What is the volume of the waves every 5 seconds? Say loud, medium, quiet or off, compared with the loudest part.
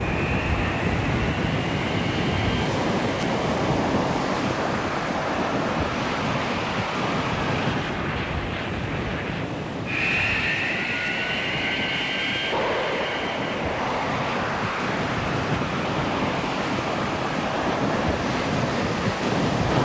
loud, loud, medium, loud.